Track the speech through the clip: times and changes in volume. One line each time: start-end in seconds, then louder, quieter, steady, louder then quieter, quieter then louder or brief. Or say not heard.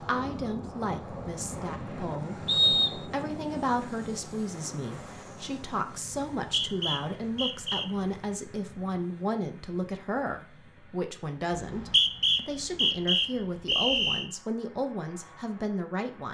0.0-16.2 steady.